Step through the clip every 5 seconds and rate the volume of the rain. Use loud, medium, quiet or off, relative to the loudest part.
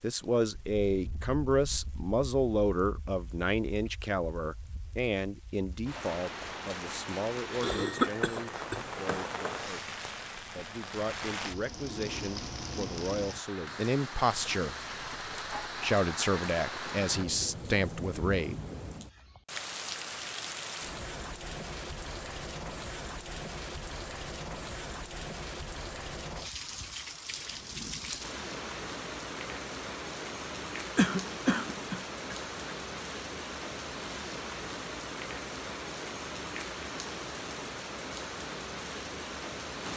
quiet, loud, loud, loud, loud, loud, loud, loud.